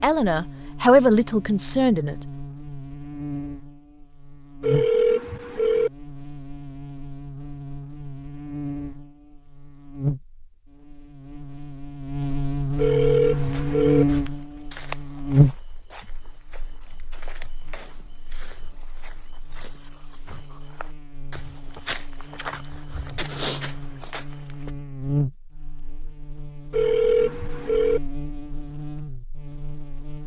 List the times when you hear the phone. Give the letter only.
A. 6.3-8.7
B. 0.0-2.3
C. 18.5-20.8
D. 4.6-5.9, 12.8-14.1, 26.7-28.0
D.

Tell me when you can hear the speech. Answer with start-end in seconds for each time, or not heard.
0.0-2.3.